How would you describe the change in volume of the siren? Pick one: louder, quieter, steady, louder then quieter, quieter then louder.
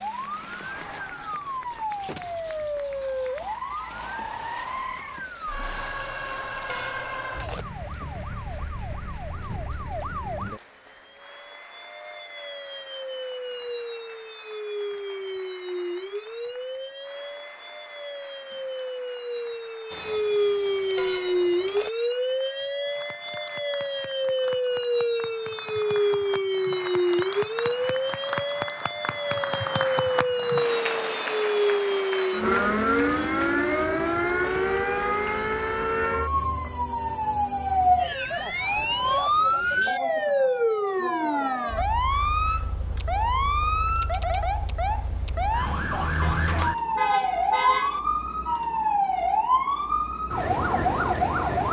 louder.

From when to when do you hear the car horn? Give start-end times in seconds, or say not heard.
5.6-7.7, 19.9-21.9, 46.2-48.0.